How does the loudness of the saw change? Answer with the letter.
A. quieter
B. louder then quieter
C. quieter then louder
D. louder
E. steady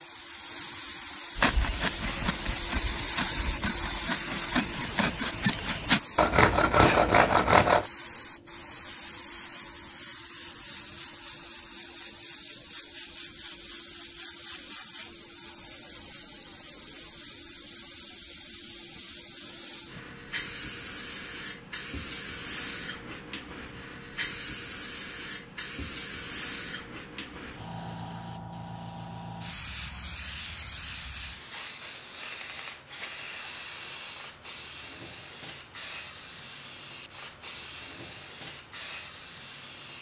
D.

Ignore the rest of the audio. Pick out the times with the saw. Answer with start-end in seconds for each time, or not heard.
1.4-7.8.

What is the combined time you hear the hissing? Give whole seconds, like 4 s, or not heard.
40 s.